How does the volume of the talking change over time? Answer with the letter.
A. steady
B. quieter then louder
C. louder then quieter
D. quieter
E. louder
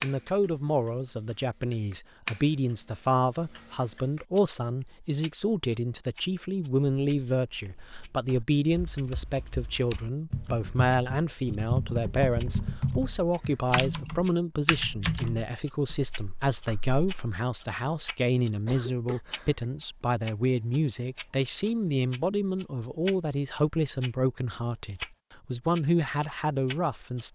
A.